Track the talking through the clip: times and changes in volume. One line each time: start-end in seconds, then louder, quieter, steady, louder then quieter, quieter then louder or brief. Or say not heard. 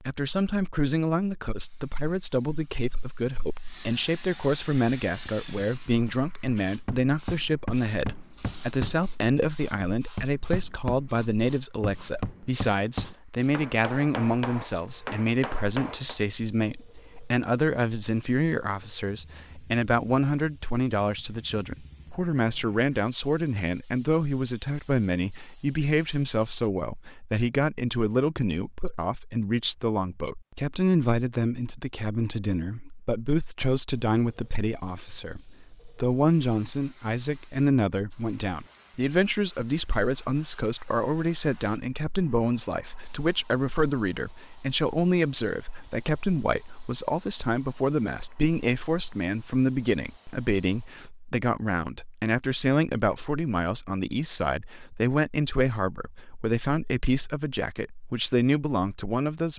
0.0-59.5 steady.